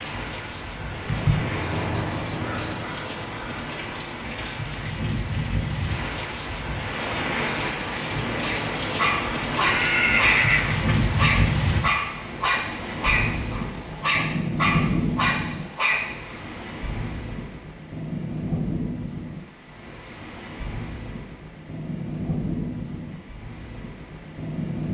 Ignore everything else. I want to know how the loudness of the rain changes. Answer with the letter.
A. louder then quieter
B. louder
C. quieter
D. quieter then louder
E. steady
A.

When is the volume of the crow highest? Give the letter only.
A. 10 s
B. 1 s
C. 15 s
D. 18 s
B.